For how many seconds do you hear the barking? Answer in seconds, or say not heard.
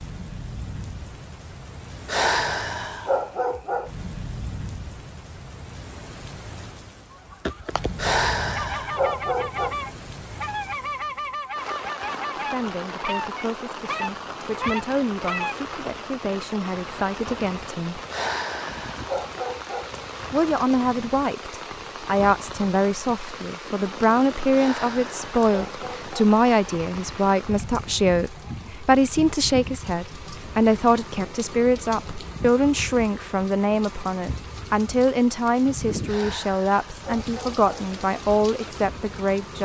9 s.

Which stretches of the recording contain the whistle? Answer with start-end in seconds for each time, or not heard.
not heard.